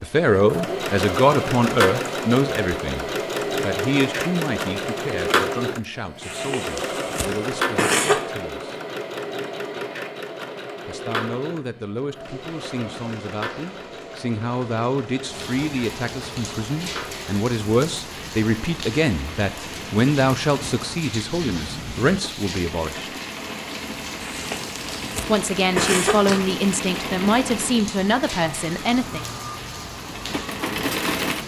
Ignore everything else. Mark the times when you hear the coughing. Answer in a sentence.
The coughing can be heard from 6.2 to 8.2 s and from 24.2 to 26.4 s.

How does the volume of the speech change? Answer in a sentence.
The loudness of the speech goes down, then up.